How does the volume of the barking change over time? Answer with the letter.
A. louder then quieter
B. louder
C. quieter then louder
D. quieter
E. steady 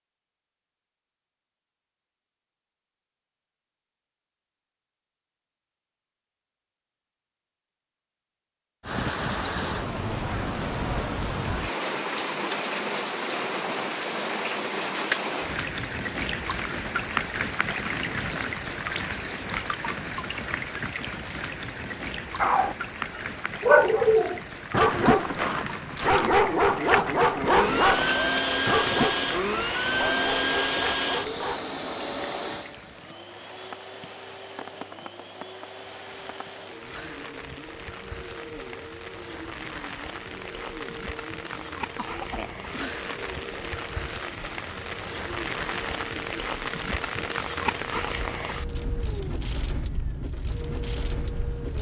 D.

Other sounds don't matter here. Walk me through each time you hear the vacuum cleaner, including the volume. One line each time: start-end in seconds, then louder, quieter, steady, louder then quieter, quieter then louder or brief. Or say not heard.
27.4-51.7 quieter.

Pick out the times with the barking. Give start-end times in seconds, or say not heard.
22.4-31.6.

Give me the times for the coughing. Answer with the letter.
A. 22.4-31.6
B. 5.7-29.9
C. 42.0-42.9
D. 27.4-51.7
C.